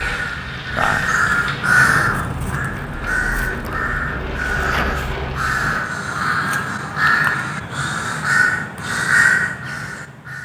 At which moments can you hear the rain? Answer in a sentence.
You can hear the rain from 0.0 to 5.8 s.